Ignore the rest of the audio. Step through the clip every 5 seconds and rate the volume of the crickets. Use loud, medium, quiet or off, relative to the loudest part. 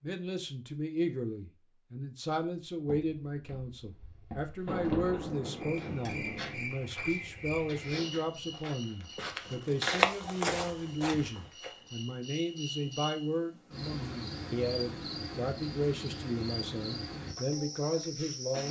off, loud, loud, loud.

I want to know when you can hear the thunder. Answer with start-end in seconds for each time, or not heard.
4.7-6.7.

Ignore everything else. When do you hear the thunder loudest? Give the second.
5 s.